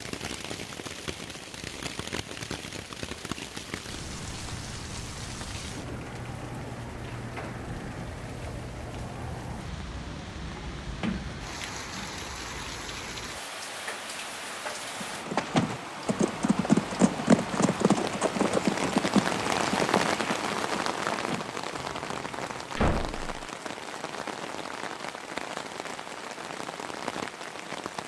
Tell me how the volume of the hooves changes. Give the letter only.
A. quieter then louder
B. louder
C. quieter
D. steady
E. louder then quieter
C.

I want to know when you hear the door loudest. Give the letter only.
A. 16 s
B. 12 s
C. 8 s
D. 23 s
D.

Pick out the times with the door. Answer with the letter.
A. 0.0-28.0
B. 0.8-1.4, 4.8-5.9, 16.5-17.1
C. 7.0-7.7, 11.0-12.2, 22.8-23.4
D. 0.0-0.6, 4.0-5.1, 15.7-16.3
C.